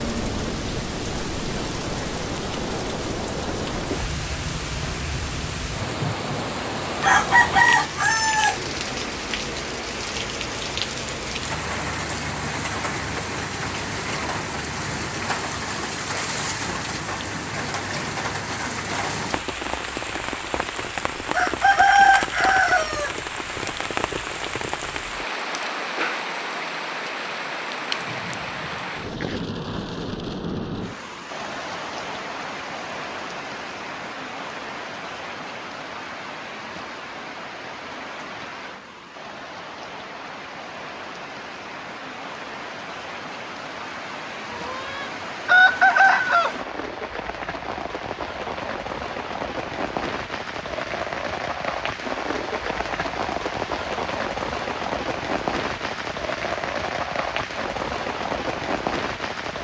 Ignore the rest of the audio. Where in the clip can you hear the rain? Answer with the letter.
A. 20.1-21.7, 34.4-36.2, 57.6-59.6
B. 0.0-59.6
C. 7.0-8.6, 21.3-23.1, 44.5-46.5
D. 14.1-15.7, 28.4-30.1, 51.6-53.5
B.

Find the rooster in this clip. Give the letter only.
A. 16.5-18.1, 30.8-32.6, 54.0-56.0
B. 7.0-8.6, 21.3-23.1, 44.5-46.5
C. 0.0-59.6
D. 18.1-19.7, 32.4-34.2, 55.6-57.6
B.